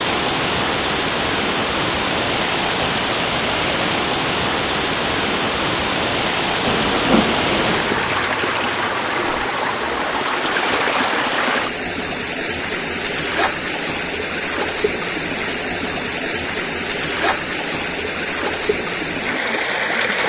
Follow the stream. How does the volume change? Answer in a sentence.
The volume of the stream stays about the same.